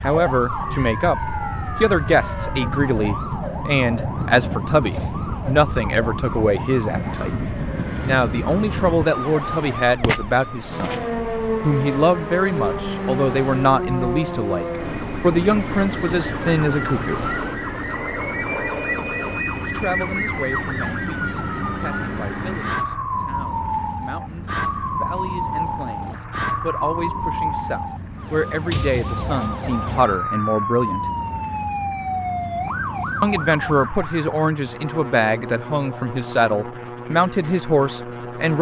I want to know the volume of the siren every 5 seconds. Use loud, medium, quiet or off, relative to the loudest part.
loud, loud, loud, loud, loud, loud, loud, off.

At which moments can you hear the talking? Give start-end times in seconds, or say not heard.
0.0-7.3, 8.1-17.2, 19.6-31.1, 33.2-38.5.